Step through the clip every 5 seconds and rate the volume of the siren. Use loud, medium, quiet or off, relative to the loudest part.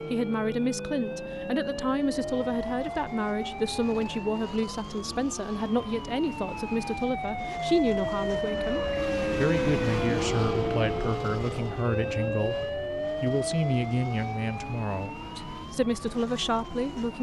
medium, loud, loud, quiet.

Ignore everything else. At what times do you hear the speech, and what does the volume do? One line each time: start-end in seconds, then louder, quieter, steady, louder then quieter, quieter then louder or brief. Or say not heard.
0.1-17.1 steady.